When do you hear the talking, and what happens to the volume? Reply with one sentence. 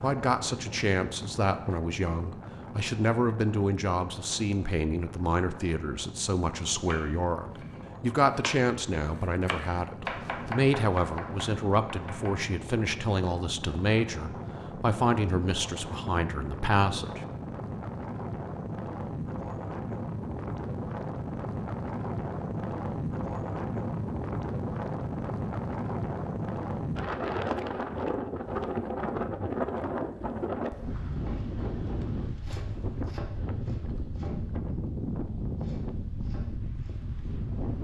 The talking can be heard from 0.0 to 17.2 s, at a steady volume.